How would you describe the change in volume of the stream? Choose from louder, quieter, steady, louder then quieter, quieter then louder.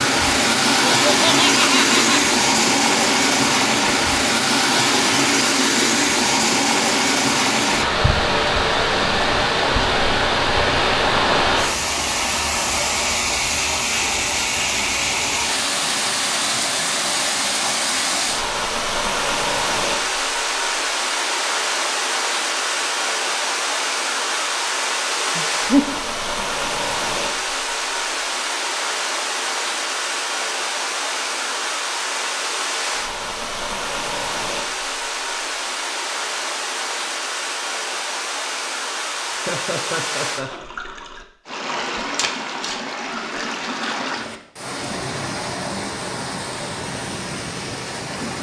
quieter.